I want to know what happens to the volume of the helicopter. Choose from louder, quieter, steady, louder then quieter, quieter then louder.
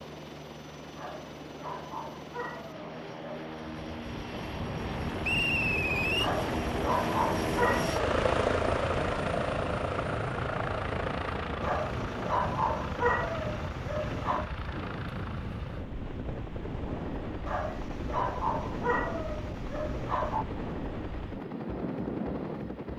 louder then quieter.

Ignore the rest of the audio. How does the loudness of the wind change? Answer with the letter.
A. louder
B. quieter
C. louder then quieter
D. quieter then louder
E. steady
E.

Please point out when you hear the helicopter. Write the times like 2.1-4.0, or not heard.
0.0-22.9.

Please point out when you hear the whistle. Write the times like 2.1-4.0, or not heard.
5.2-6.3.